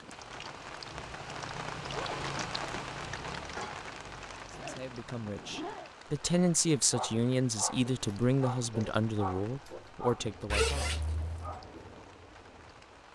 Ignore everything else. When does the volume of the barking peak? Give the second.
11 s.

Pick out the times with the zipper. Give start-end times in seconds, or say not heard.
1.8-2.2, 4.5-6.0, 10.5-11.6.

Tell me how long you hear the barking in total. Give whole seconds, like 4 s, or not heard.
5 s.